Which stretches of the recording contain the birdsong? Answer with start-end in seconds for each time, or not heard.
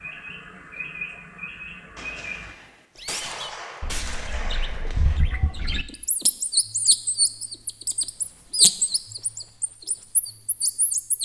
0.0-11.2.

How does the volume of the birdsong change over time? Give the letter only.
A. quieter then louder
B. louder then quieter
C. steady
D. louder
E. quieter
B.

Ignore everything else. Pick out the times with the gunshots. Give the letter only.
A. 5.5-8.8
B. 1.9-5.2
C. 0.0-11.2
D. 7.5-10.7
B.